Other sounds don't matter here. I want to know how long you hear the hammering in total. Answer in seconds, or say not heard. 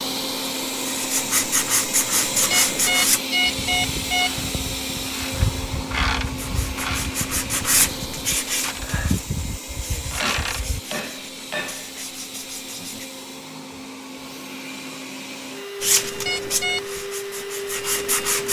2 s.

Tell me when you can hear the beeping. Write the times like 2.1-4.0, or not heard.
2.5-4.5, 16.2-16.8.